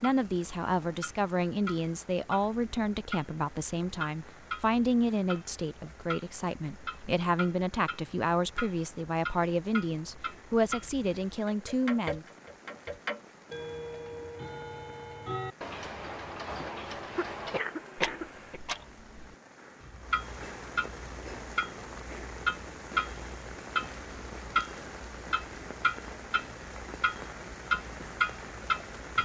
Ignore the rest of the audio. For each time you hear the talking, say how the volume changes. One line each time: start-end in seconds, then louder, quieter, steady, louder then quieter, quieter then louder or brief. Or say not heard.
0.0-12.2 steady.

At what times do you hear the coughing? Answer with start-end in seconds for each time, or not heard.
17.1-18.6.